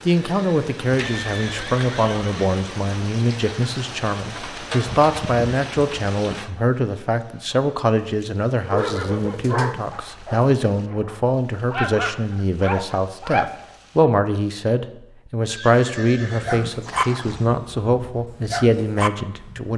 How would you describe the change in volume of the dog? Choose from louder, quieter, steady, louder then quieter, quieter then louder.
steady.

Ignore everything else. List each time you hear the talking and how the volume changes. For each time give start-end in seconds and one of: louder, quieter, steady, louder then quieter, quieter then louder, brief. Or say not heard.
0.1-19.7 steady.